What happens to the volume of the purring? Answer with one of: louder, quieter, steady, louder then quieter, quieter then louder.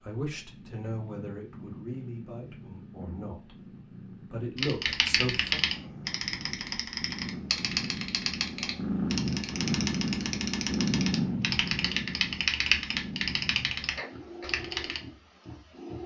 louder then quieter.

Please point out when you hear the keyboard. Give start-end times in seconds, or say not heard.
4.5-15.0.